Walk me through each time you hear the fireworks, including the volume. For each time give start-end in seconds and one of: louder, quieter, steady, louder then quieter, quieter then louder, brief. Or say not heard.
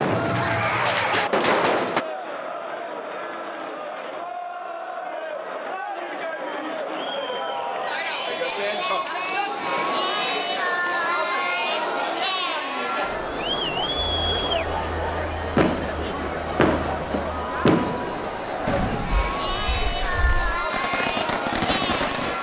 0.0-2.0 brief
15.6-22.3 quieter then louder.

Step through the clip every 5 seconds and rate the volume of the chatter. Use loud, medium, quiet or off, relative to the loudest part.
medium, loud, loud, loud, loud.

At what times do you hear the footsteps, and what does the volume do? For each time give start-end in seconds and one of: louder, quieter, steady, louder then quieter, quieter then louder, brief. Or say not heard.
not heard.